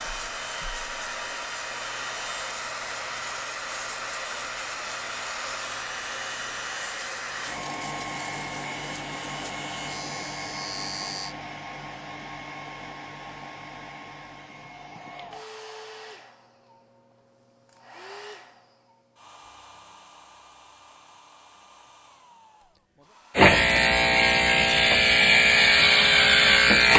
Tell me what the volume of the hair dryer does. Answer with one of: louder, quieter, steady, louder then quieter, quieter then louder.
quieter.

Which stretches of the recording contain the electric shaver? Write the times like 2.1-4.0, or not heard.
0.0-11.3, 23.4-26.9.